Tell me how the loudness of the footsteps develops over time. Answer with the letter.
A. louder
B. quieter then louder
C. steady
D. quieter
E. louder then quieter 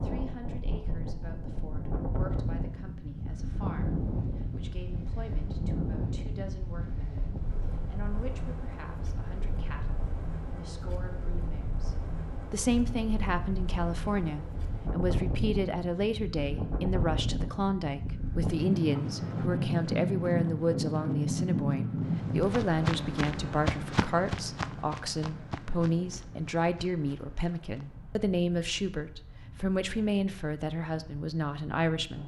D.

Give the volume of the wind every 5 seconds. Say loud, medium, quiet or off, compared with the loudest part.
medium, medium, medium, loud, loud, quiet, quiet.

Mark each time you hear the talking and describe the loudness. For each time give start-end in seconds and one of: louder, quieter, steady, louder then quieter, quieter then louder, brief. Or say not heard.
0.0-32.2 louder.